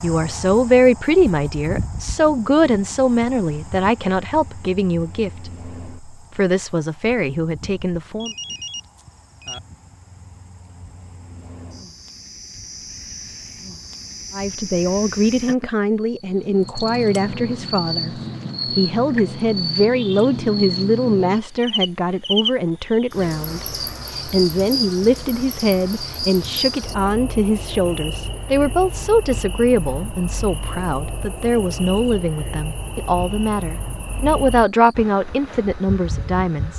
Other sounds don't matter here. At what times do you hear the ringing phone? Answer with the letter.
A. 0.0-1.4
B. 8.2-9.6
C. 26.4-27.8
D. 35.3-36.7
B.